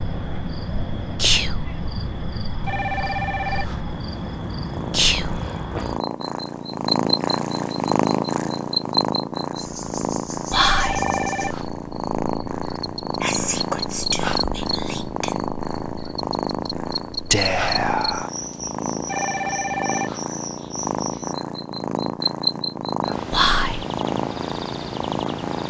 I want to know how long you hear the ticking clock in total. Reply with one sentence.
The ticking clock can't be heard in this clip.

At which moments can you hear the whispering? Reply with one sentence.
The whispering can be heard from 1.1 to 1.6 s, from 4.9 to 5.4 s, from 10.5 to 11.1 s, from 13.2 to 15.4 s, from 17.3 to 18.3 s and from 23.3 to 23.9 s.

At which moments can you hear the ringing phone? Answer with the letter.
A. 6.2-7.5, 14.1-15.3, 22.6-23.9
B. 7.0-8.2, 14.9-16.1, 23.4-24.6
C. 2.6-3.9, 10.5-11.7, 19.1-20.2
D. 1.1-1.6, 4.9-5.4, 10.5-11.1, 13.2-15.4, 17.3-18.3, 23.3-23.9
C.